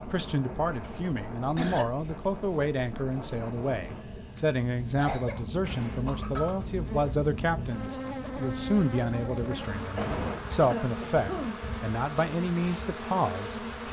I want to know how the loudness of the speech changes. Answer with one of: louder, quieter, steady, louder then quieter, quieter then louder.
steady.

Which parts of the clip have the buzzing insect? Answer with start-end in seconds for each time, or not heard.
5.6-13.8.